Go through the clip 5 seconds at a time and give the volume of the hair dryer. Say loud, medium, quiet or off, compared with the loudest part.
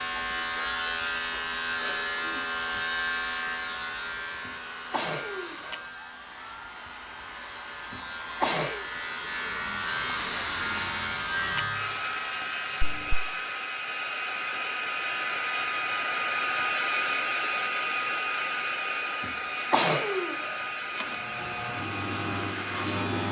quiet, quiet, medium, loud, medium.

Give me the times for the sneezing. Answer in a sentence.
The sneezing can be heard from 4.5 to 5.8 s, from 7.9 to 8.8 s and from 19.2 to 21.1 s.